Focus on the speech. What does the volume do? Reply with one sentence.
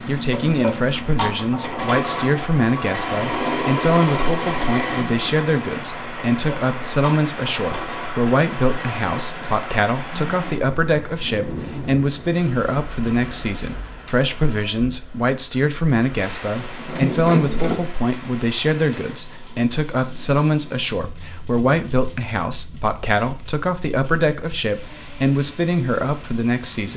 The volume of the speech stays about the same.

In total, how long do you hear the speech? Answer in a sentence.
The speech can be heard for 27 seconds in total.